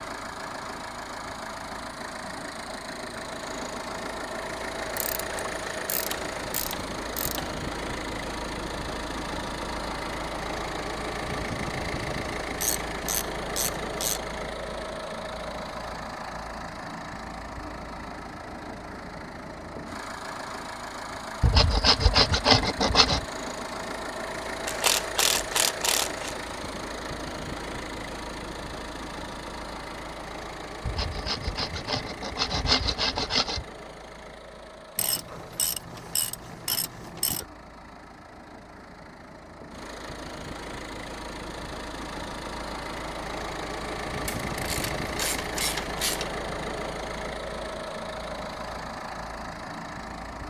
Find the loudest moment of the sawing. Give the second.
22 s.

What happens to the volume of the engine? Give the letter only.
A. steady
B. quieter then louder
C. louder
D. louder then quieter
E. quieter
B.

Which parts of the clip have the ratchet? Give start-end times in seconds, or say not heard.
5.0-7.5, 12.6-14.2, 24.6-26.4, 35.0-37.5, 44.2-46.4.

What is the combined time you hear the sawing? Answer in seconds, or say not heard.
5 s.